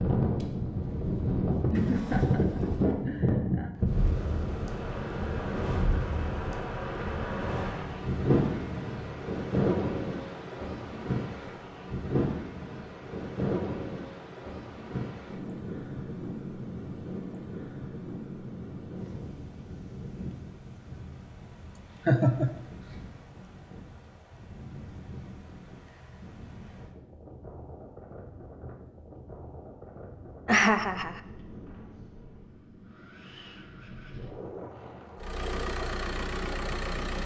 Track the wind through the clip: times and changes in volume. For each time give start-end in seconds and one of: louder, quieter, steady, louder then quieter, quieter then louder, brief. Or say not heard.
0.0-37.2 quieter.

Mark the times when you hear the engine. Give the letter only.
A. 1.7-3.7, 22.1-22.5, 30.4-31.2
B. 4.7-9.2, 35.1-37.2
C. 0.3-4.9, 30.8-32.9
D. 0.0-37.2
B.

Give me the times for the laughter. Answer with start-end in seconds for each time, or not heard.
1.7-3.7, 22.1-22.5, 30.4-31.2.